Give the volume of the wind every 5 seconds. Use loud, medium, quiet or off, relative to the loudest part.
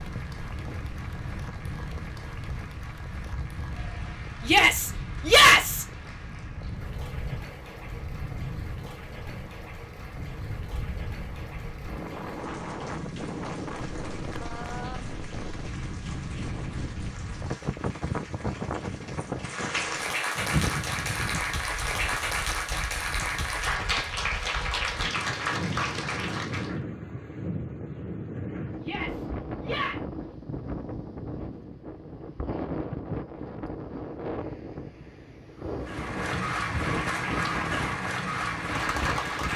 medium, medium, loud, loud, loud, loud, loud, loud.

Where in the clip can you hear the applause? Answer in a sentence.
The applause can be heard from 0.0 to 26.8 s and from 35.8 to 39.5 s.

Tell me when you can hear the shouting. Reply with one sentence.
The shouting can be heard from 4.5 to 5.8 s and from 28.8 to 30.0 s.